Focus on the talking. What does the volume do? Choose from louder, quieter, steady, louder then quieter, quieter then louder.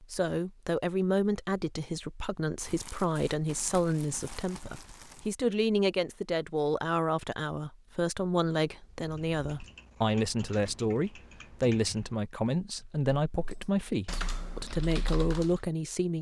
steady.